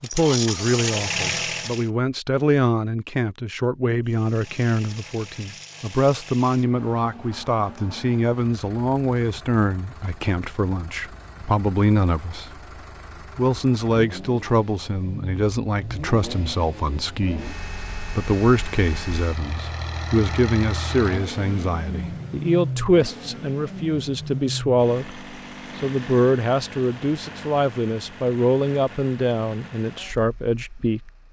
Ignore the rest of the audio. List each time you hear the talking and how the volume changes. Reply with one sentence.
You can hear the talking from 0.0 to 12.5 s, at a steady volume; and from 13.3 to 31.1 s, at a steady volume.